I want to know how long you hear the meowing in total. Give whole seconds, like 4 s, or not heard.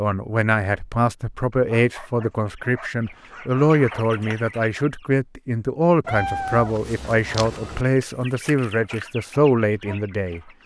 2 s.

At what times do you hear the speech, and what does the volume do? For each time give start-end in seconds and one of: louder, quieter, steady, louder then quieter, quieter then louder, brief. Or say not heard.
0.0-10.4 steady.